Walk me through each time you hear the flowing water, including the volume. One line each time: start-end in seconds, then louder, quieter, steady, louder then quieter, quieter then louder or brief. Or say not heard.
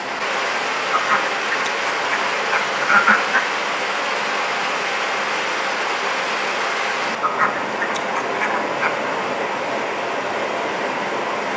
0.0-11.5 steady.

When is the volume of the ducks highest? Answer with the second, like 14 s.
3 s.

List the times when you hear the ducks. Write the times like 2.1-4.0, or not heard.
0.9-3.4, 7.2-9.1.